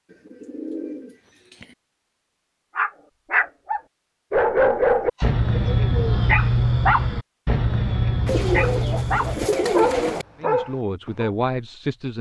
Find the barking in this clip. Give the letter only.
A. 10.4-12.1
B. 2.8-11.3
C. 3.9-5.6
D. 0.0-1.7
B.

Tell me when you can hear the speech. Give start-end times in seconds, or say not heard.
10.4-12.1.